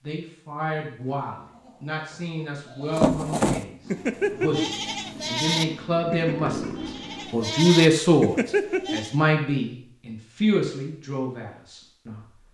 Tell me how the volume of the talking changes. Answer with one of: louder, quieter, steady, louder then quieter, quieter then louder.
louder then quieter.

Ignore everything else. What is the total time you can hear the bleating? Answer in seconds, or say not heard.
8 s.